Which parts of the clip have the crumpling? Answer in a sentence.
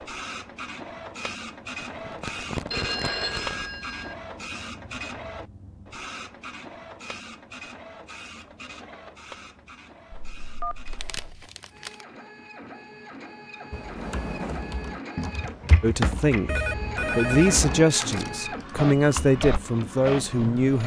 You can hear the crumpling from 1.8 to 3.8 s, from 10.8 to 12.1 s and from 17.9 to 18.4 s.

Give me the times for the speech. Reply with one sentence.
The speech can be heard from 15.8 to 20.8 s.